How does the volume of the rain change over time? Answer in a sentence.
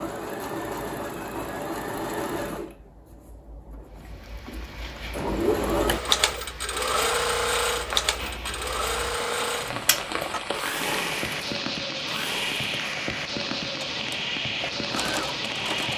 The loudness of the rain goes up.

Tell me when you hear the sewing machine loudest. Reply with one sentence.
The loudest moment of the sewing machine is at 6 seconds.